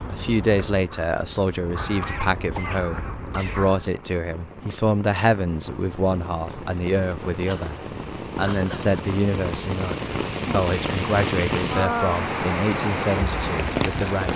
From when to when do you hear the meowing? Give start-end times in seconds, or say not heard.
not heard.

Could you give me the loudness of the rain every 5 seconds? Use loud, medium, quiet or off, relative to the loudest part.
quiet, medium, loud.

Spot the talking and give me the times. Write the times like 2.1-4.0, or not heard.
0.0-7.8, 8.3-14.3.